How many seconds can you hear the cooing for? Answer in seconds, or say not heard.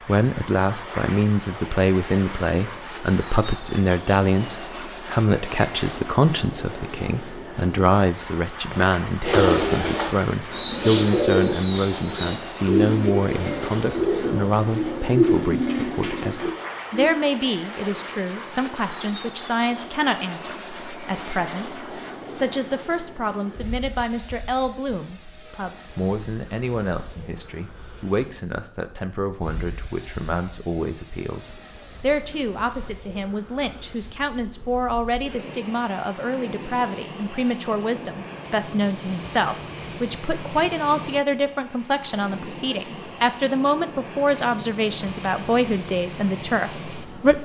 8 s.